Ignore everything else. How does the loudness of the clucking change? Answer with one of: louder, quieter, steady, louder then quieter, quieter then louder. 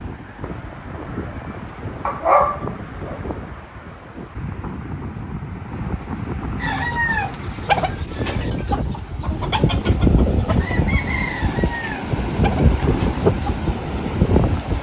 quieter.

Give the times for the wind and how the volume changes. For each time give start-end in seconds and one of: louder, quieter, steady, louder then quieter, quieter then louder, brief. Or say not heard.
0.0-14.7 louder.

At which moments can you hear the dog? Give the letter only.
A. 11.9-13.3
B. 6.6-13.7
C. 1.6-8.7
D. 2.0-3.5
D.